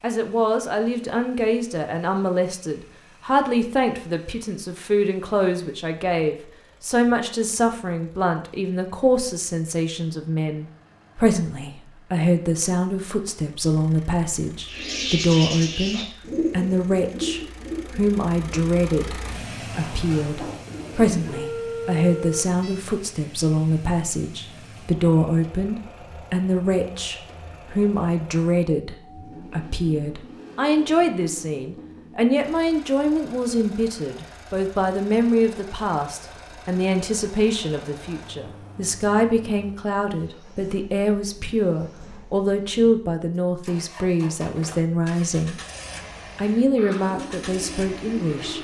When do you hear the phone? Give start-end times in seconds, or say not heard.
21.3-22.9.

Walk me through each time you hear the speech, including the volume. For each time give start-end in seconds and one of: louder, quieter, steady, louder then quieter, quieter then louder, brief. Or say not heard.
0.0-45.6 steady
46.4-48.5 brief.